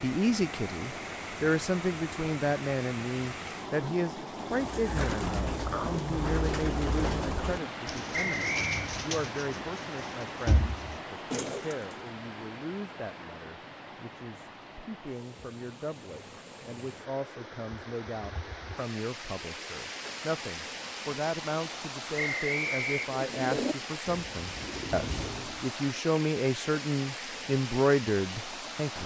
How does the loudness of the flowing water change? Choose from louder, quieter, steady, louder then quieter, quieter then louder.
quieter then louder.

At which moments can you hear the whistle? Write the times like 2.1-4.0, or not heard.
8.1-8.9, 22.1-23.1.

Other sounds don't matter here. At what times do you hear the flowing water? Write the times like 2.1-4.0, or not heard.
0.0-29.0.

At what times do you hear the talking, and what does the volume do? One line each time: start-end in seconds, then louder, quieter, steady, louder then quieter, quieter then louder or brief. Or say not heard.
0.0-29.0 quieter then louder.